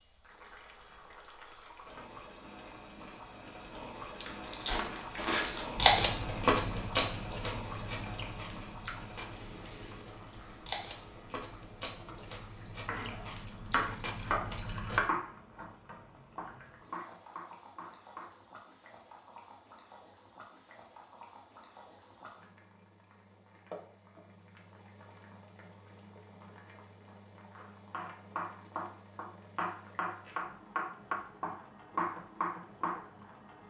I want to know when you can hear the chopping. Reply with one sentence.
You can hear the chopping from 12.8 to 18.4 s and from 27.6 to 33.2 s.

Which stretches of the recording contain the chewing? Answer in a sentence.
The chewing can be heard from 4.2 to 15.0 s.